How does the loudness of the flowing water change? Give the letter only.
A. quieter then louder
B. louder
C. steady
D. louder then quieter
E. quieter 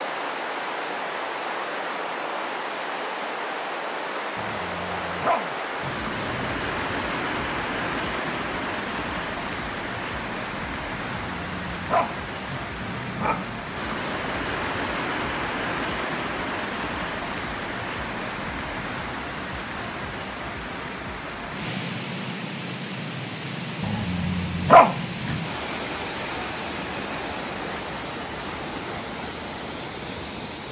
C.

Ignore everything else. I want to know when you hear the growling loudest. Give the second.
25 s.